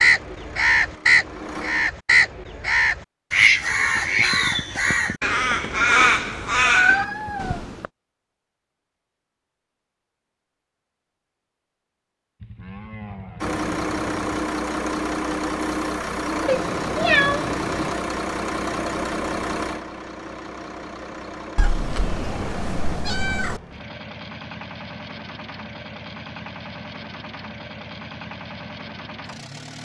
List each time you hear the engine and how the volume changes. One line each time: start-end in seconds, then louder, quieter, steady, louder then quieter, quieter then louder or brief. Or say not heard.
0.0-1.9 brief
13.4-29.8 quieter.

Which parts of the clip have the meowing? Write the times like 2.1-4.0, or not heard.
6.7-7.9, 16.4-17.9, 21.6-23.6.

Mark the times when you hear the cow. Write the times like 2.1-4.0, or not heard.
12.4-14.4.